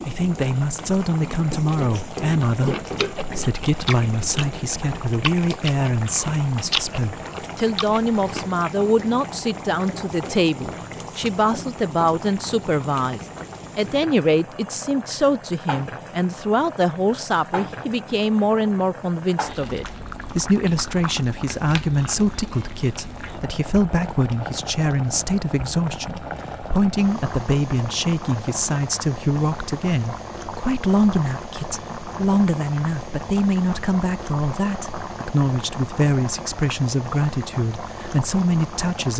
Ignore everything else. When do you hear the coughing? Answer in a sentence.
You can't hear the coughing here.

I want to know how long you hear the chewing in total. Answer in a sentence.
You can hear the chewing for 6 seconds altogether.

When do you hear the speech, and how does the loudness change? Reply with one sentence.
The speech can be heard from 0.1 to 39.1 s, at a steady volume.